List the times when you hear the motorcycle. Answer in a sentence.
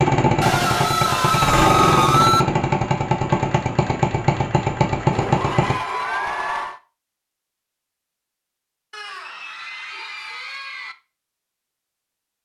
The motorcycle can be heard from 0.0 to 5.8 s.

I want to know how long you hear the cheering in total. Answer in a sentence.
The cheering can be heard for 6 seconds in total.